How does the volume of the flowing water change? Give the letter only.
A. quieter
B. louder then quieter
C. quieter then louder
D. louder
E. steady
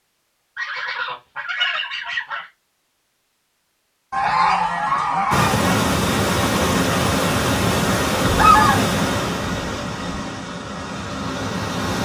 A.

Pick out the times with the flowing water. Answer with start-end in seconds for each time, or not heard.
5.3-11.9.